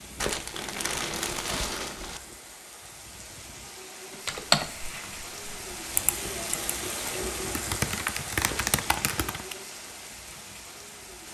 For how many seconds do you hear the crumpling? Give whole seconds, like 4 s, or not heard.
3 s.